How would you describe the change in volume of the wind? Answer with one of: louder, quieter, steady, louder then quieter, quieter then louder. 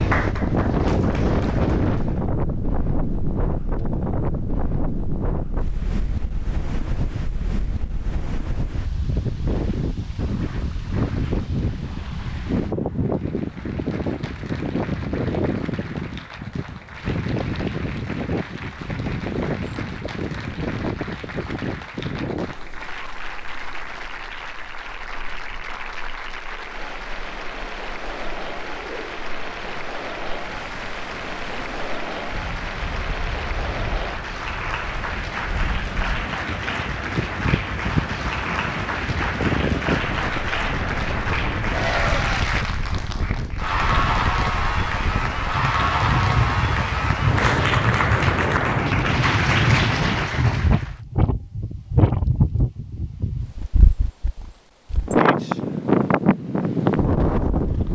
quieter then louder.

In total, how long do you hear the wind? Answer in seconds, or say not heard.
58 s.